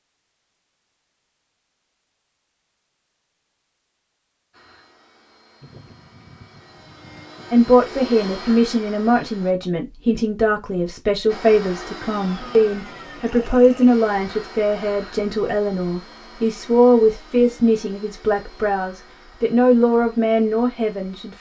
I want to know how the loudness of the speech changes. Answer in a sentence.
The volume of the speech stays about the same.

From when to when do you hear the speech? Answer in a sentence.
The speech can be heard from 7.5 to 21.3 s.